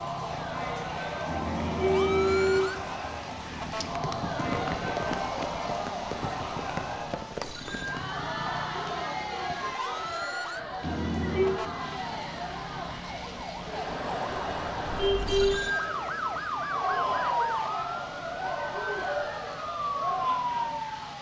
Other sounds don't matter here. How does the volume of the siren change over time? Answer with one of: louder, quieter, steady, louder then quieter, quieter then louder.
louder.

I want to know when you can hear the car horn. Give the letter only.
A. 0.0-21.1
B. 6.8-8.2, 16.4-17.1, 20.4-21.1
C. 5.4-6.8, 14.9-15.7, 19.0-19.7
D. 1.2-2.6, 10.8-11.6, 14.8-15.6
D.